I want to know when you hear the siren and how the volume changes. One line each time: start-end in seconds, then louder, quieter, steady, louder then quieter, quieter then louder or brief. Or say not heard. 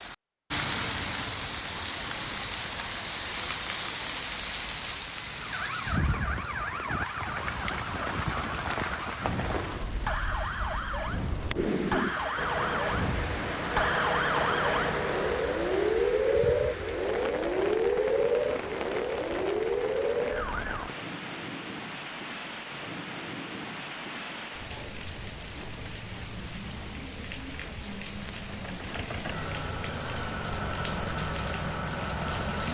5.4-20.9 louder.